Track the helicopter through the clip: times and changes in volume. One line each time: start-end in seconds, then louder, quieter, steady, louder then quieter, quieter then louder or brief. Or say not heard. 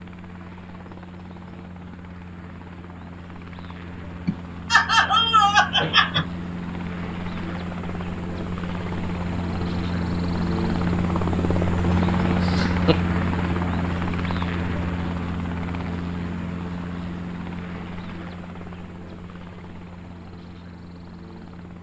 0.0-21.7 louder then quieter.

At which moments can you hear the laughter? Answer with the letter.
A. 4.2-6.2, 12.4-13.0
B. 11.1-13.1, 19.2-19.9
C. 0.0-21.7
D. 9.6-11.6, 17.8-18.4
A.